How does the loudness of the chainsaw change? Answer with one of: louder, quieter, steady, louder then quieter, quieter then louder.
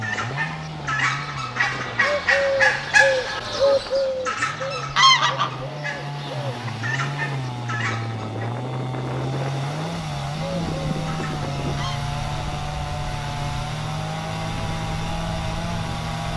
louder.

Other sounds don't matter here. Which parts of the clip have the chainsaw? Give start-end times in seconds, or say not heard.
0.0-16.3.